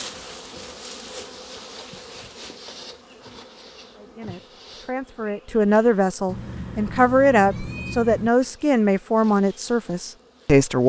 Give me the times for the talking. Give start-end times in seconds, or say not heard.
4.0-10.8.